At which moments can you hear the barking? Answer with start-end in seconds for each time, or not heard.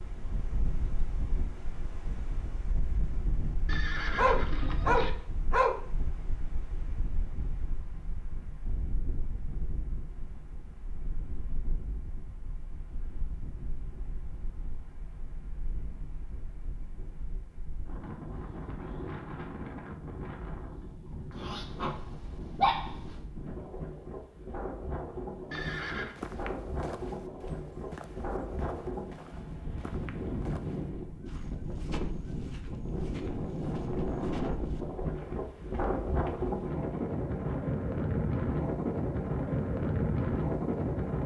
4.2-5.8, 21.3-23.1.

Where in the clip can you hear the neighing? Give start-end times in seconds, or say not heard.
3.6-5.1, 25.5-26.1.